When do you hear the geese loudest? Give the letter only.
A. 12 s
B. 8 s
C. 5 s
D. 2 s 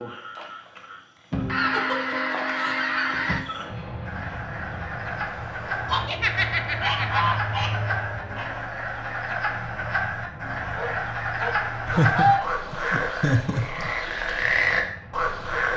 A.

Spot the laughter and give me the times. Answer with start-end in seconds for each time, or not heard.
1.7-2.9, 5.9-7.3, 11.8-13.9.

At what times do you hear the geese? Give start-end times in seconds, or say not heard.
1.3-3.5, 5.8-8.5, 10.7-12.5.